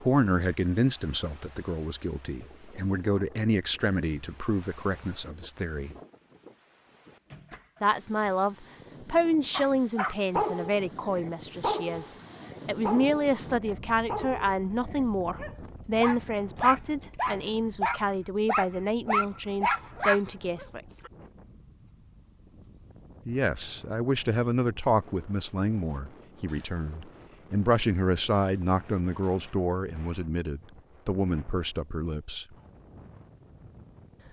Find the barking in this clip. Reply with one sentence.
The barking can be heard from 9.5 to 21.1 s.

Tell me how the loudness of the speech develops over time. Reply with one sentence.
The loudness of the speech stays about the same.